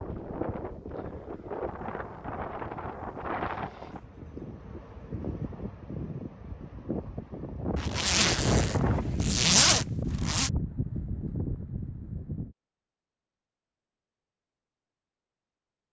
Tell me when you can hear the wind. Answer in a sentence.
The wind can be heard from 0.0 to 12.6 s.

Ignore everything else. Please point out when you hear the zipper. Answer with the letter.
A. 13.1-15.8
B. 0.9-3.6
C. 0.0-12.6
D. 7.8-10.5
D.